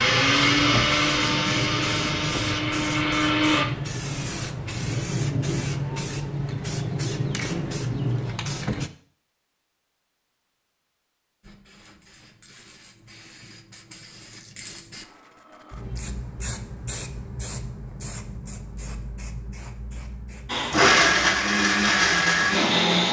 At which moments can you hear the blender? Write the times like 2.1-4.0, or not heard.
0.0-3.6, 20.4-23.0.